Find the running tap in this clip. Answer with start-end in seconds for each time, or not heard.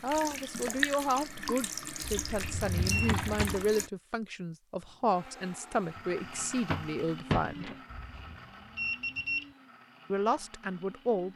0.0-3.9.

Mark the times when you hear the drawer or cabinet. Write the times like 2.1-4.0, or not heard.
2.4-3.7, 6.0-7.8.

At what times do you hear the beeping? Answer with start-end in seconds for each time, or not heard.
2.0-3.1, 7.9-9.4.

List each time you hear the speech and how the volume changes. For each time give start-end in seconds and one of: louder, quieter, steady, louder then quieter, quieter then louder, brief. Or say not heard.
0.0-7.7 steady
10.1-11.3 brief.